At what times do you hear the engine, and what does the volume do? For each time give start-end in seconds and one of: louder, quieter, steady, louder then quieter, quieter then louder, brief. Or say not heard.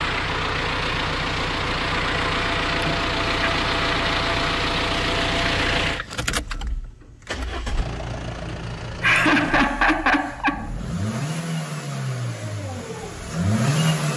0.0-14.1 quieter then louder.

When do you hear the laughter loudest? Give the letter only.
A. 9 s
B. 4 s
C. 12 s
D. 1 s
A.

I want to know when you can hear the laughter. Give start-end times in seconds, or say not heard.
2.9-3.5, 8.4-10.7.